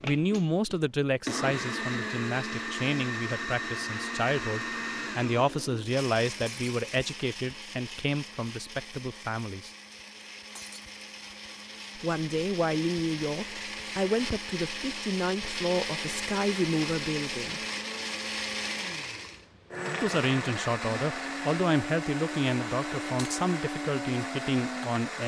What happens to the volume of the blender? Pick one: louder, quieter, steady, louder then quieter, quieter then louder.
quieter then louder.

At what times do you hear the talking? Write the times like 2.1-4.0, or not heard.
0.0-9.7, 11.9-17.6, 20.0-25.2.